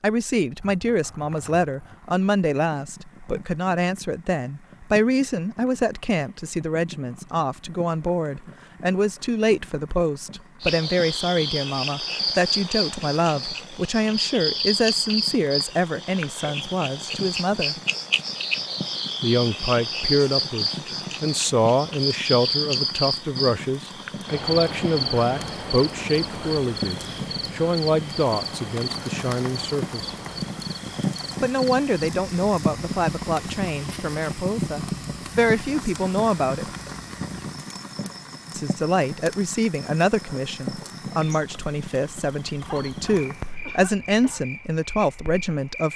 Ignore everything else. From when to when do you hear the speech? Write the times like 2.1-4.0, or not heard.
0.0-17.8, 19.2-30.1, 31.4-36.6, 38.5-45.9.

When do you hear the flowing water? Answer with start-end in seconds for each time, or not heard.
not heard.